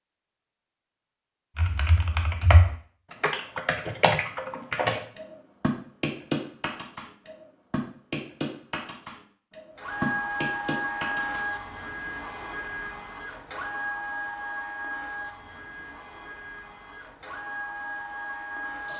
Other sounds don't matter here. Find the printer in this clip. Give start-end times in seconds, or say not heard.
9.8-18.9.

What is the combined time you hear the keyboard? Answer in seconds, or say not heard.
10 s.